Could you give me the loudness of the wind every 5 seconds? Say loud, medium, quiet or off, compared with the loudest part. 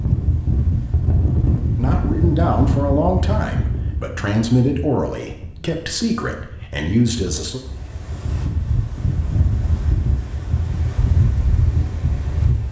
loud, medium, loud.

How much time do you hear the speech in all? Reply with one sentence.
The speech can be heard for 6 seconds in total.